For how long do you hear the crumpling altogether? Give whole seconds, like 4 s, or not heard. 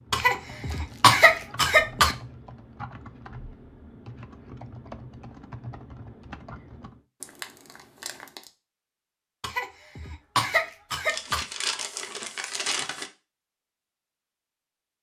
4 s.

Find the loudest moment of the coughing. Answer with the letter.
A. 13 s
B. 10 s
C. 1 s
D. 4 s
C.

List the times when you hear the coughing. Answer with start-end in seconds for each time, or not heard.
0.1-2.1, 9.4-11.4.